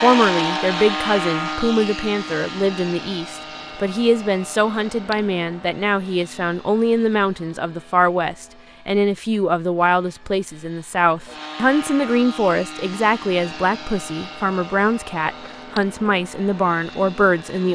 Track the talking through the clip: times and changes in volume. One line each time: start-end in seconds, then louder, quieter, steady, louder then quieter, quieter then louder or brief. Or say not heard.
0.0-17.7 steady.